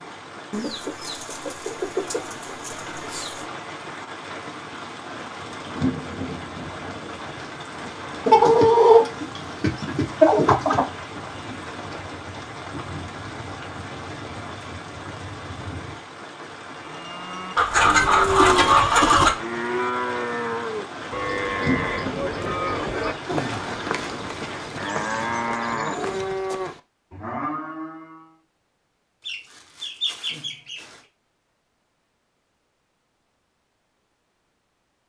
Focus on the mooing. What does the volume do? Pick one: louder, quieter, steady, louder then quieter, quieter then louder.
steady.